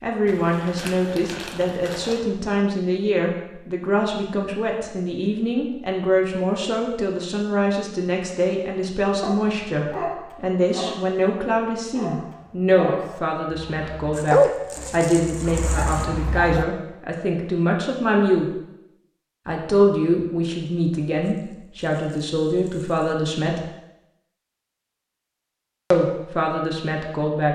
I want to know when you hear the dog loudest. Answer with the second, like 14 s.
14 s.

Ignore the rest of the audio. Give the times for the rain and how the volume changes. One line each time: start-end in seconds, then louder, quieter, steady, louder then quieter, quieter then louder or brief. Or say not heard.
not heard.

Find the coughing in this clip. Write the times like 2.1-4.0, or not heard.
not heard.